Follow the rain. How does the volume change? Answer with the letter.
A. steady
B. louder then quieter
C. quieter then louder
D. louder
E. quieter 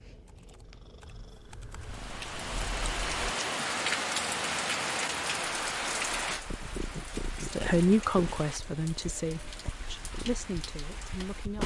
E.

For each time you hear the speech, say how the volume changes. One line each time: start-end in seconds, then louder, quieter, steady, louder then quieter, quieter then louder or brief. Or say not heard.
7.4-11.6 quieter.